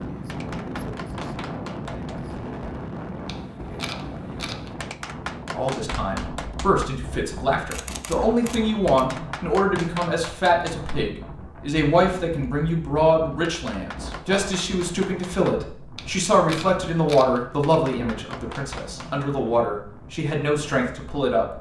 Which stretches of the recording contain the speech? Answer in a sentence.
The speech can be heard from 5.5 to 21.5 s.